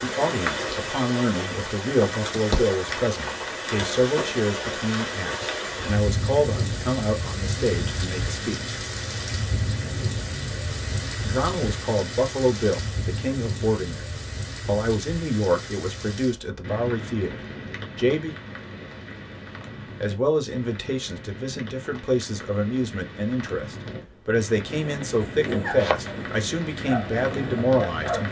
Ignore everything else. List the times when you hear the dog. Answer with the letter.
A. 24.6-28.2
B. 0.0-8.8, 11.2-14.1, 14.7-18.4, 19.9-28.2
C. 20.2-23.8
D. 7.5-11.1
A.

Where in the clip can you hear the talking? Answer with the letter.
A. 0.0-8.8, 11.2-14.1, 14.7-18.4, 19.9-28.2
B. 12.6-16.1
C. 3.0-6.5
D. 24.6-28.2
A.